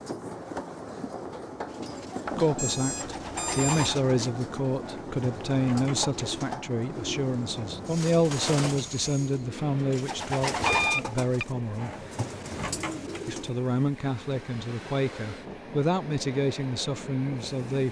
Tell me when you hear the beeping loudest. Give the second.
11 s.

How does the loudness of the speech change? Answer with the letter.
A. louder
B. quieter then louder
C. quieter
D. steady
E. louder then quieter
D.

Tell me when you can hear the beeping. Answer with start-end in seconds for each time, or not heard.
2.2-4.0, 10.7-11.4.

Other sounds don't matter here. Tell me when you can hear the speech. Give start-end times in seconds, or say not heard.
2.4-11.9, 13.2-17.8.